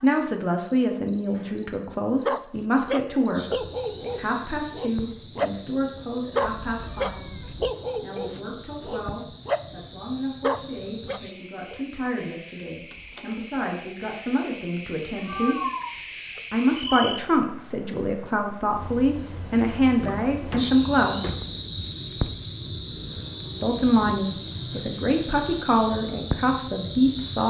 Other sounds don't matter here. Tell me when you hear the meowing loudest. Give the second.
16 s.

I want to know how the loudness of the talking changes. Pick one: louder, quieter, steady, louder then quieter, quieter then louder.
quieter then louder.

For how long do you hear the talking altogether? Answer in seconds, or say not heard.
24 s.